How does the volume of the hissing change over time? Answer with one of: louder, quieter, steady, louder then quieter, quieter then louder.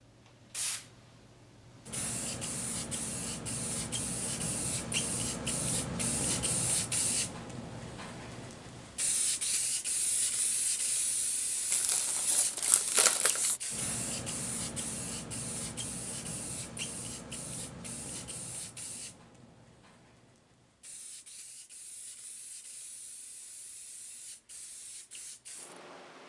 quieter.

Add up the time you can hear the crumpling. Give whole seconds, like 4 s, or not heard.
2 s.